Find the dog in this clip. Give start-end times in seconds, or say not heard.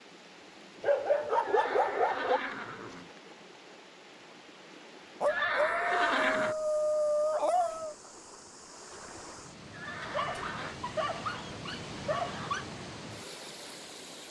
0.8-2.4, 5.2-8.0, 10.0-12.7.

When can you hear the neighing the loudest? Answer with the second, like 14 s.
6 s.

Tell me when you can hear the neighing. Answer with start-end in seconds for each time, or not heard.
1.4-3.1, 5.2-6.5, 9.7-10.8.